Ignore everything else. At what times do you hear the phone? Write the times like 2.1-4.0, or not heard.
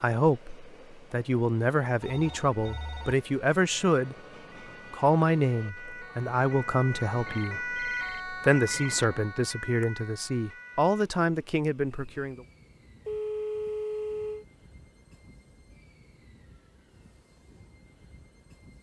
2.0-3.1, 7.2-9.1, 13.1-14.4.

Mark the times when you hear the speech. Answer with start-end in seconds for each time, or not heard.
0.0-4.2, 4.9-12.4.